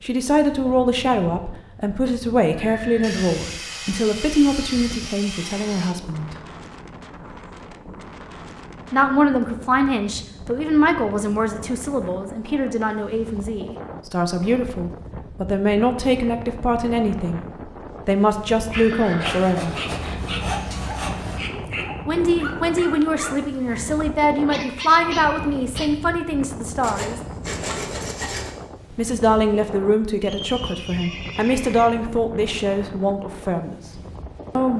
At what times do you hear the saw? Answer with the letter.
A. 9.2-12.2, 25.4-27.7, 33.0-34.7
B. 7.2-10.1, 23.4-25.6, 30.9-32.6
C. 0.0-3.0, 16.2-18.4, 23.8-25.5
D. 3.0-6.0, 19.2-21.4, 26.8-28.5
D.